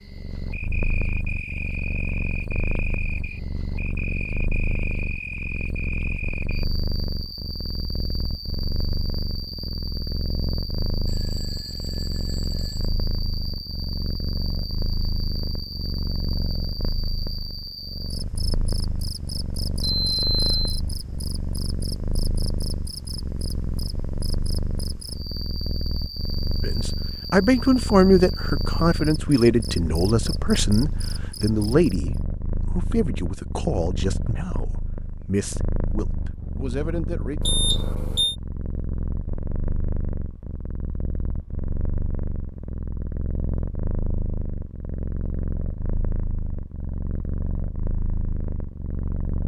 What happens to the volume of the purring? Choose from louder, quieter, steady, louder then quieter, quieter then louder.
steady.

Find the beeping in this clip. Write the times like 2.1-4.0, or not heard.
11.1-12.9, 19.8-20.8, 37.4-38.4.